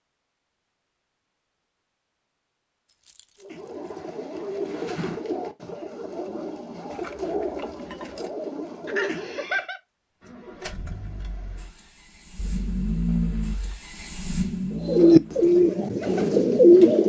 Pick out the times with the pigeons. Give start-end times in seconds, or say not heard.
3.4-9.6, 14.7-17.0.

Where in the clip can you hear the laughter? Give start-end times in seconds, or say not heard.
8.8-9.8.